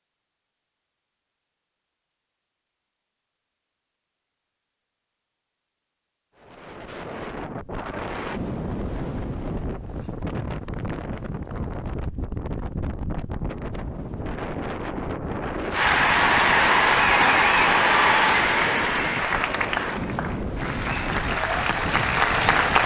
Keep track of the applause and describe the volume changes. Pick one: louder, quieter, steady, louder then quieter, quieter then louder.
quieter then louder.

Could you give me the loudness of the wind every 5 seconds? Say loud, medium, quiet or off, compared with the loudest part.
off, loud, loud, loud, loud.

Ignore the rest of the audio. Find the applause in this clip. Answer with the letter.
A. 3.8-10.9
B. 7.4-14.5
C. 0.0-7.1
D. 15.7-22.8
D.